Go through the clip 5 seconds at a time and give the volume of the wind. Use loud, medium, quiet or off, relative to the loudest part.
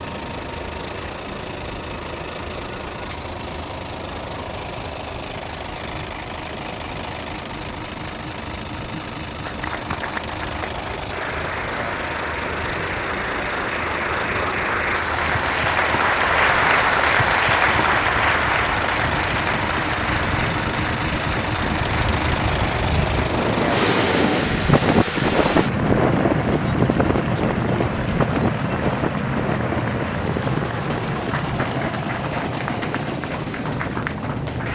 quiet, quiet, quiet, quiet, loud, loud, medium.